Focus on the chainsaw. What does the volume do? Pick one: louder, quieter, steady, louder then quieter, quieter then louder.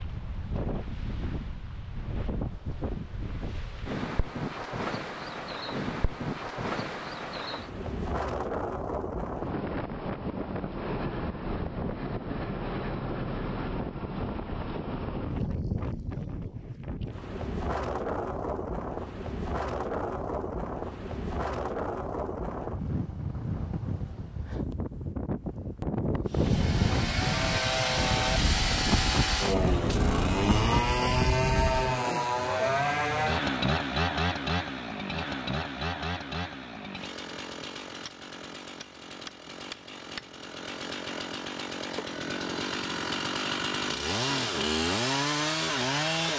quieter then louder.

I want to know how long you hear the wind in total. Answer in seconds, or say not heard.
32 s.